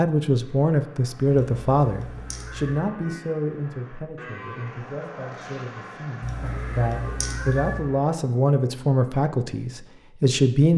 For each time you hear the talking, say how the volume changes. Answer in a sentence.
You can hear the talking from 0.0 to 10.7 s, getting quieter then louder.